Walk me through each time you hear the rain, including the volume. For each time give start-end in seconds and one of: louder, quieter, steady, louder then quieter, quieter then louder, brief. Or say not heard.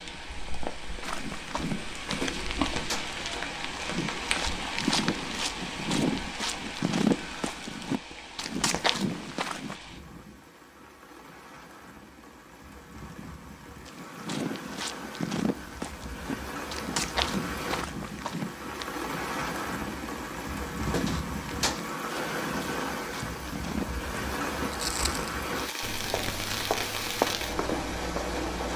0.0-28.7 quieter then louder.